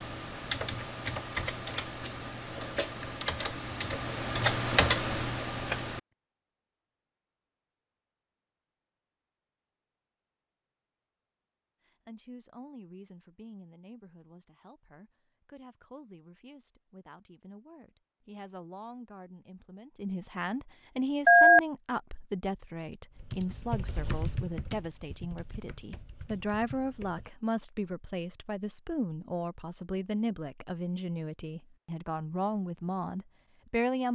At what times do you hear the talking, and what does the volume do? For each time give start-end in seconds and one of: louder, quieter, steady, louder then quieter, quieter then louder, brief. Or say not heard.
11.8-34.0 louder.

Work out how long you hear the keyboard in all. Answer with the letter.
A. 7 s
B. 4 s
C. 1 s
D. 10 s
D.